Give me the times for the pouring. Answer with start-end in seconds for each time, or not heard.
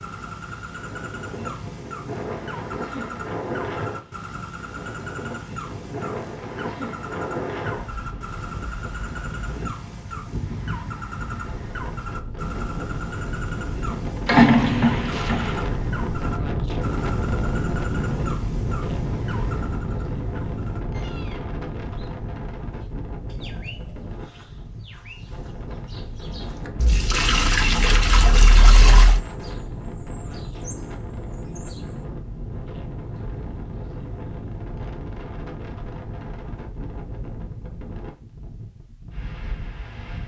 14.2-15.7, 26.8-29.2.